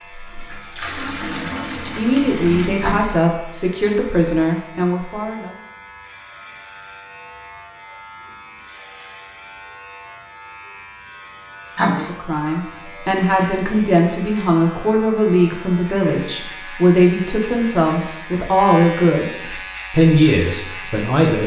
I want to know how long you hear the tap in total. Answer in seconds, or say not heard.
3 s.